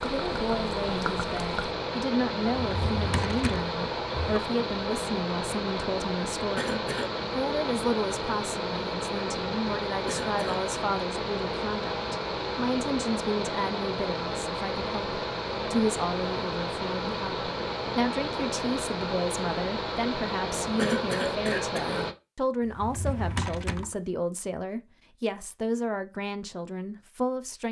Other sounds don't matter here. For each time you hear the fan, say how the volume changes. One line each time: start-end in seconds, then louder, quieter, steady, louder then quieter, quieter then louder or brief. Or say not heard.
0.0-22.1 steady.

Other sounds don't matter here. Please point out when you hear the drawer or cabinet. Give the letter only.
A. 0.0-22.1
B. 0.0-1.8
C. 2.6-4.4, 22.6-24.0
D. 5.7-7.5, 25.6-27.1
C.